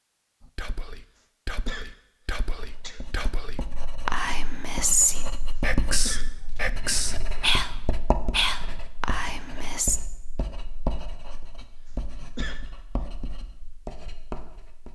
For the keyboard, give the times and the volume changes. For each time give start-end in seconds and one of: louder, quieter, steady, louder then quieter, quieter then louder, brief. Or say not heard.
not heard.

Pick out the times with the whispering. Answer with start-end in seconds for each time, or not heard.
0.4-10.0.